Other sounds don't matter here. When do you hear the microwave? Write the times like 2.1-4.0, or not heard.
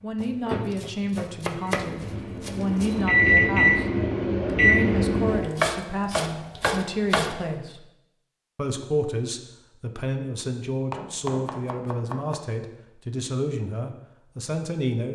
0.0-5.5.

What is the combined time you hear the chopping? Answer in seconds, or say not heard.
7 s.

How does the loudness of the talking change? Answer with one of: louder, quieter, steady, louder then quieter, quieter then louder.
steady.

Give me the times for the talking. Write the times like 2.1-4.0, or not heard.
0.0-3.9, 4.5-7.8, 8.6-15.1.